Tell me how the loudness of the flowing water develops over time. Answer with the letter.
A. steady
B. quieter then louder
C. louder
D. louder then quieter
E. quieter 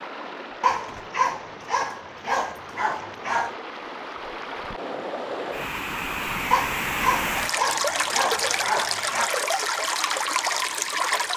C.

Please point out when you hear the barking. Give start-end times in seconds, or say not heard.
0.6-3.5, 6.5-9.3.